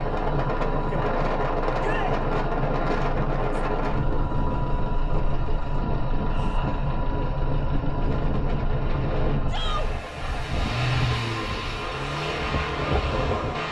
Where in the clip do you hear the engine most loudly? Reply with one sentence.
The loudest moment of the engine is at 11 seconds.